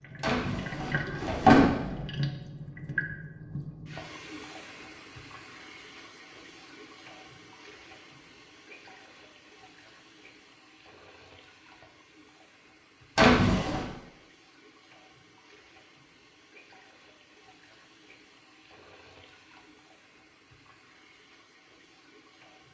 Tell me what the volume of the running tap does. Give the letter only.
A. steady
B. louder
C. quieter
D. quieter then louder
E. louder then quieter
C.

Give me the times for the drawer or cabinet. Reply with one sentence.
You can hear the drawer or cabinet from 0.2 to 2.0 s and from 13.2 to 13.8 s.